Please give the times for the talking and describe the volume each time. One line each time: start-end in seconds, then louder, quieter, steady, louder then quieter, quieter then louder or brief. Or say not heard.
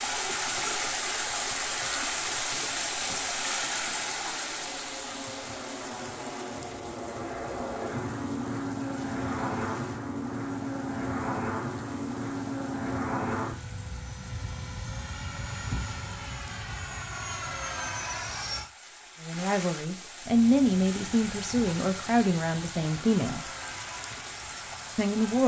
19.2-23.4 louder then quieter
24.9-25.4 brief.